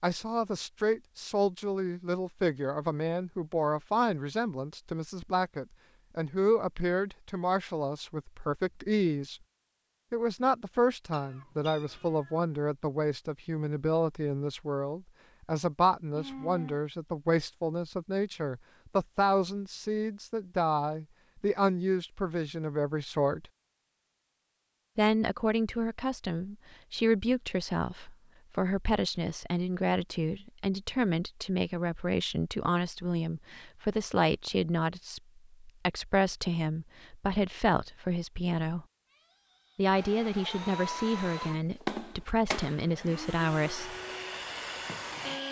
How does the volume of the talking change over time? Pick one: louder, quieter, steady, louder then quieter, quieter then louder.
steady.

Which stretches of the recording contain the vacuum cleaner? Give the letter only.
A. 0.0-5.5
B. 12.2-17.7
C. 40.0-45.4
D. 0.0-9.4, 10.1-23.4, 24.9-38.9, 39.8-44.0
C.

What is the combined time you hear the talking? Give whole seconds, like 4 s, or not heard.
41 s.